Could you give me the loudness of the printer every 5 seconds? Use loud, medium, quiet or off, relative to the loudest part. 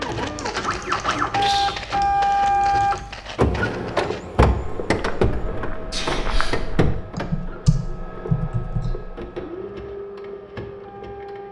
loud, medium, quiet.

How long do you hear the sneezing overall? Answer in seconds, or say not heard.
2 s.